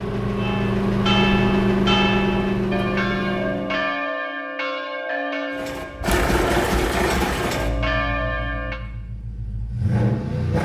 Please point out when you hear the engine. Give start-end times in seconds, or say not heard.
0.0-4.0, 5.5-10.6.